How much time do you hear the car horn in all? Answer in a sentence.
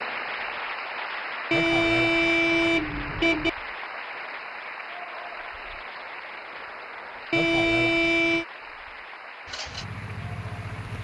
The car horn can be heard for 3 seconds in total.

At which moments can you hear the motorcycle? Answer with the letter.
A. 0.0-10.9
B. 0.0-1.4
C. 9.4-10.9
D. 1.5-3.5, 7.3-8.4
C.